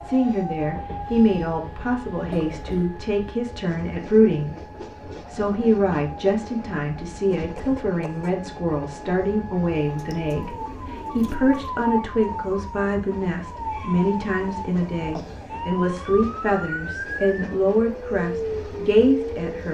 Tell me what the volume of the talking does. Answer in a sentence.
The loudness of the talking stays about the same.